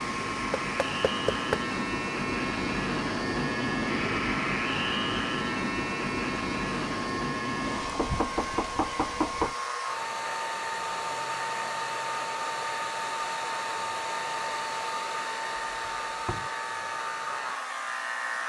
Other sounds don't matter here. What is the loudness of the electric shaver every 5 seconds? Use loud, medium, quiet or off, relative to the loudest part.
loud, loud, medium, medium.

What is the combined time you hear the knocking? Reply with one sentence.
You can hear the knocking for 4 seconds altogether.